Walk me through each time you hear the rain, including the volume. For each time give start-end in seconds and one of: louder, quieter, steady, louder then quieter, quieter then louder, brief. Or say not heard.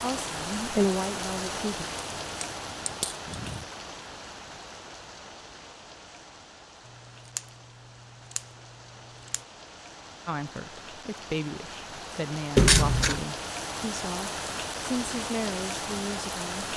0.0-16.7 quieter then louder.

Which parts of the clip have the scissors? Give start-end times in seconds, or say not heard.
1.9-3.6, 7.2-9.4, 12.6-13.2.